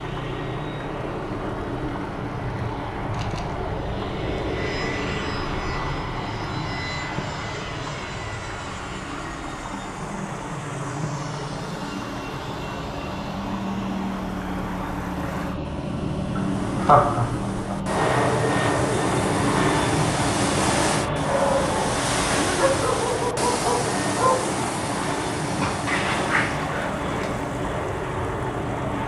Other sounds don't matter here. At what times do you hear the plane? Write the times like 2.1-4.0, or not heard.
0.0-29.0.